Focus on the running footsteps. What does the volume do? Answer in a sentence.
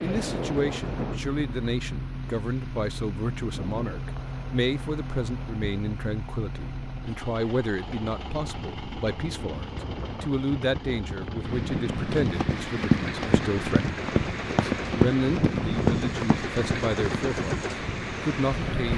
The volume of the running footsteps goes down, then up.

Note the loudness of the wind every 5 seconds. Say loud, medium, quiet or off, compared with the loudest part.
medium, medium, loud, loud.